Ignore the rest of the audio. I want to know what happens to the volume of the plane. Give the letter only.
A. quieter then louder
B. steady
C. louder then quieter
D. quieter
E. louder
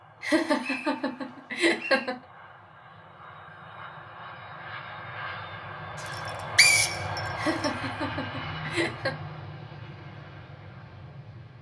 C.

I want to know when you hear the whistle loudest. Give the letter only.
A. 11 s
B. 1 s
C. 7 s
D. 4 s
C.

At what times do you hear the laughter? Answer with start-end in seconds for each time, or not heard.
0.2-2.1, 7.3-9.2.